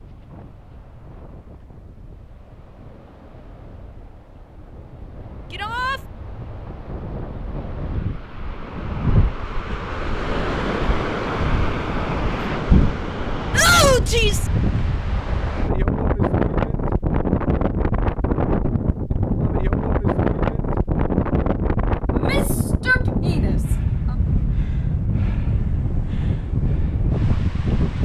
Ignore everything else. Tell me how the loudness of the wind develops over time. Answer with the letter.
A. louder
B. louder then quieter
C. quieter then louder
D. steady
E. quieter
A.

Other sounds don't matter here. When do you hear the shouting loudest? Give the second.
14 s.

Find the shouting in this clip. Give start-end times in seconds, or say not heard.
5.5-6.0, 13.5-14.5, 22.1-24.1.